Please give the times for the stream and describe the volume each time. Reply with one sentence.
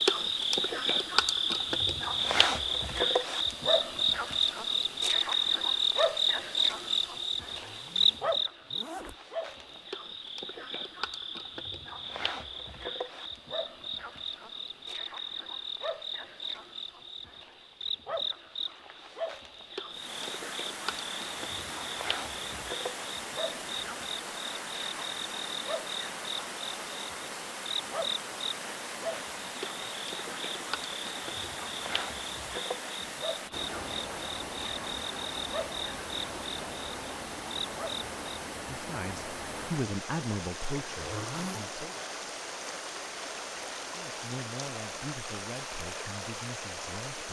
The stream can be heard from 19.9 to 47.2 s, at a steady volume.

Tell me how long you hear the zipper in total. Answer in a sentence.
The zipper can be heard for 3 seconds in total.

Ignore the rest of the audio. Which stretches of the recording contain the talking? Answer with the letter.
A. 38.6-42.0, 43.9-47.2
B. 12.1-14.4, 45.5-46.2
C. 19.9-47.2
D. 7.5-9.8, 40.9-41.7
A.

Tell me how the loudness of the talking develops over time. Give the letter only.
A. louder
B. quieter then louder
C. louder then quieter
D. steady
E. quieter
E.